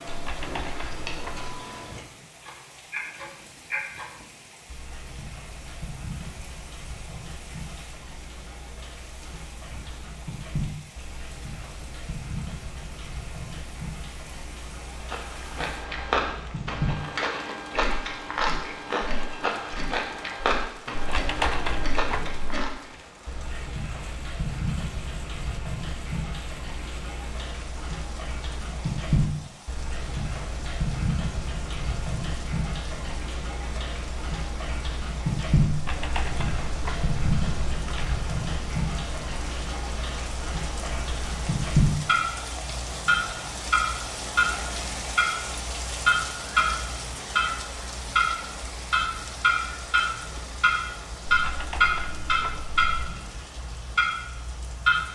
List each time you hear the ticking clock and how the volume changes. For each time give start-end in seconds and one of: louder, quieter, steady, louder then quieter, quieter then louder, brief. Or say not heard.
0.0-55.1 louder.